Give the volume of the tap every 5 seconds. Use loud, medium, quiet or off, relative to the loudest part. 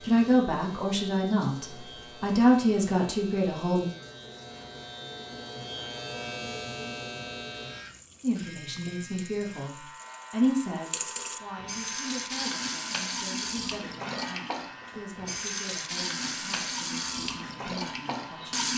quiet, quiet, loud, loud.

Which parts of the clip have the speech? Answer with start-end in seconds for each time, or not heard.
0.0-3.9, 8.2-18.7.